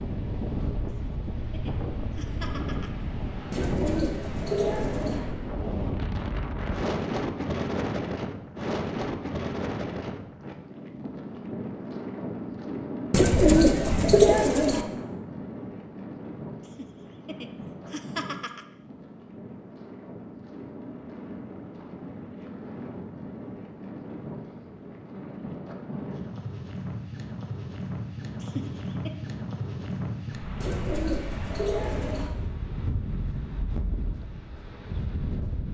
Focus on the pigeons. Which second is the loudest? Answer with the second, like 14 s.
14 s.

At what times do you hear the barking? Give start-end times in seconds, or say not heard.
not heard.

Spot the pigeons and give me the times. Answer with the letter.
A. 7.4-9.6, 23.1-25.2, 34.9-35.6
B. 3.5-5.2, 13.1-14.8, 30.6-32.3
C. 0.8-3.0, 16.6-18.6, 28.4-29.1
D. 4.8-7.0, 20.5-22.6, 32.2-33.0
B.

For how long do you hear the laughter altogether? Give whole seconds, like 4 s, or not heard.
5 s.